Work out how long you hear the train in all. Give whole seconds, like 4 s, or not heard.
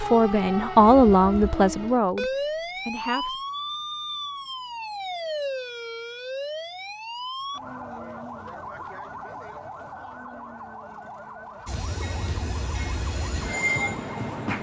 3 s.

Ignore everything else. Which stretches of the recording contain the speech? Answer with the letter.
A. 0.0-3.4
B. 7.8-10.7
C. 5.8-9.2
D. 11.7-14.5
A.